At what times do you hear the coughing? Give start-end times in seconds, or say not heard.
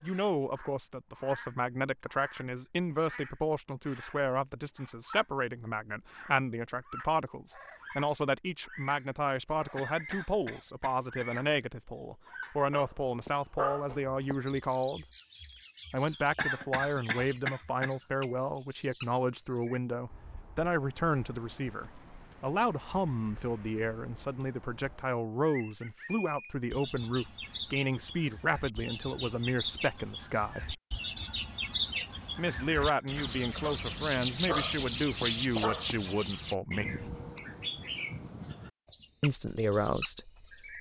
9.8-11.7, 16.4-18.4, 32.5-33.4.